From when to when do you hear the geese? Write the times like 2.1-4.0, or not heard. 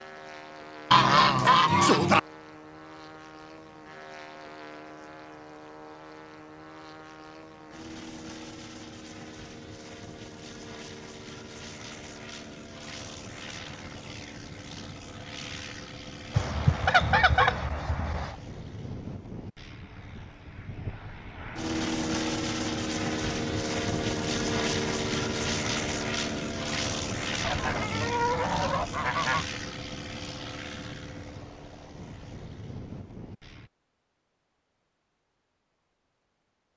0.9-2.2, 16.4-18.4, 27.4-29.4.